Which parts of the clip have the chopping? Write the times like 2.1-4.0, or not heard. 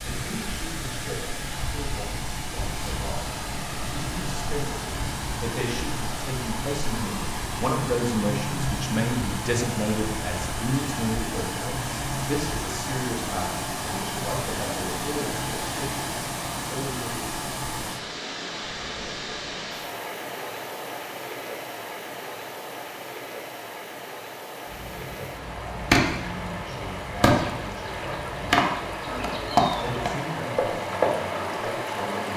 24.7-31.1.